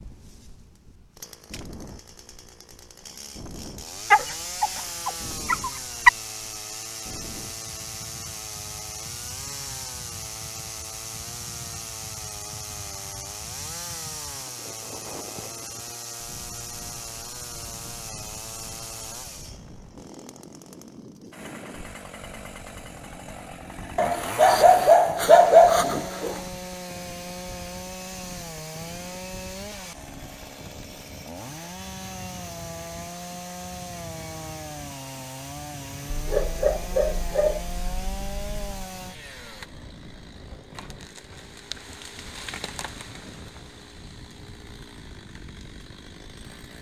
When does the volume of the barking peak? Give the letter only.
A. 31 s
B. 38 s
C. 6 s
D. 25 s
D.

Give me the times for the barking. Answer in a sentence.
The barking can be heard from 4.1 to 6.1 s, from 23.9 to 26.4 s and from 36.0 to 38.8 s.